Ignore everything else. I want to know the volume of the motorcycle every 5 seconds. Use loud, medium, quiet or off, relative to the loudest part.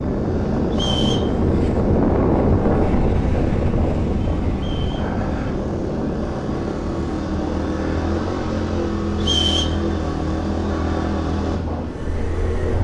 medium, loud, loud.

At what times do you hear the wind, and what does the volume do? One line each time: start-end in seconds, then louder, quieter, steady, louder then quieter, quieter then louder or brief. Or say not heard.
0.0-12.7 quieter.